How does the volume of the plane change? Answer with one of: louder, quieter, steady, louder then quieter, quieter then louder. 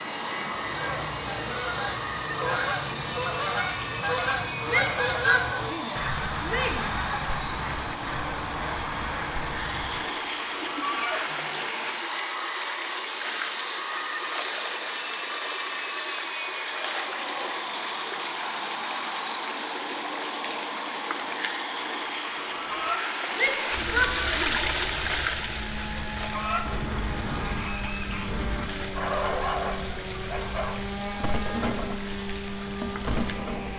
steady.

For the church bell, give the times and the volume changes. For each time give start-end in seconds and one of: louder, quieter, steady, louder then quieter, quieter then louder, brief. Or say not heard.
not heard.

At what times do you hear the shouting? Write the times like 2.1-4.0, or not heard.
4.7-7.2, 23.4-24.6.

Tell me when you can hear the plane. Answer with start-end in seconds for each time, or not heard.
0.0-33.7.